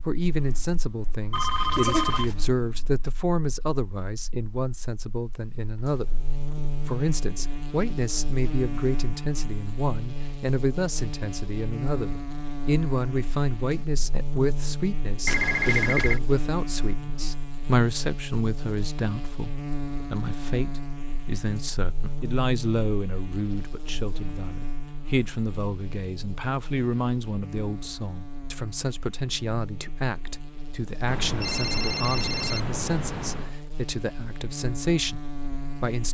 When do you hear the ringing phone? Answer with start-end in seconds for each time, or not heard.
1.3-2.4, 15.2-16.2, 31.1-33.5.